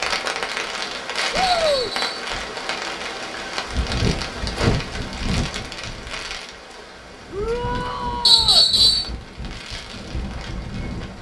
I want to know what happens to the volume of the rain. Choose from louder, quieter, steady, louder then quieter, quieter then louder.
quieter.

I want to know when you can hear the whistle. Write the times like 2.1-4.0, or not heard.
1.4-2.0, 8.2-9.1.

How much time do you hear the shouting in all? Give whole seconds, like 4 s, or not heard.
2 s.